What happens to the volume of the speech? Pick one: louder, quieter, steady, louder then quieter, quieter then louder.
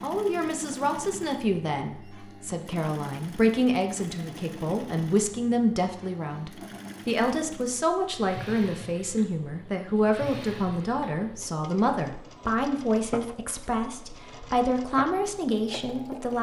steady.